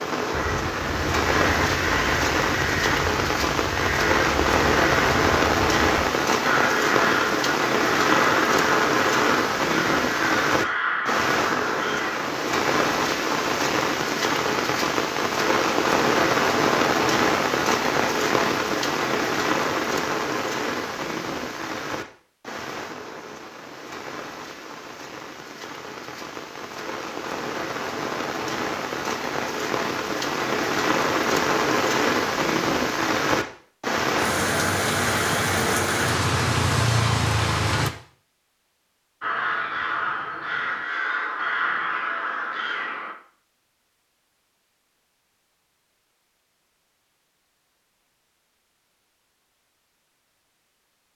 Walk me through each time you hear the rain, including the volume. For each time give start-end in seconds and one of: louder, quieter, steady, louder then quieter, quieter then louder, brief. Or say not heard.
0.0-37.9 quieter then louder.